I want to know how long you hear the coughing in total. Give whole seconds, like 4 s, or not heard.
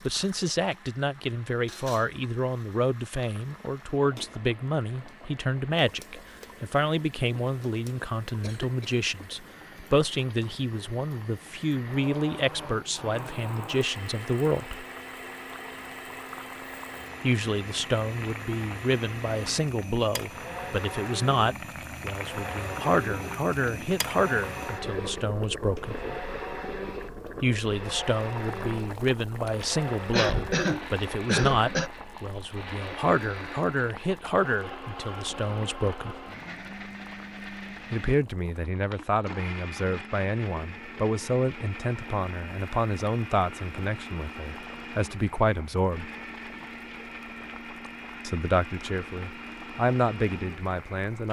3 s.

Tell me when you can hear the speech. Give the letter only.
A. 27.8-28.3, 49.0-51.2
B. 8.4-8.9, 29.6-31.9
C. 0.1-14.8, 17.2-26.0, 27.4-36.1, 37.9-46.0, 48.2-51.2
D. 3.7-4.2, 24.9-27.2
C.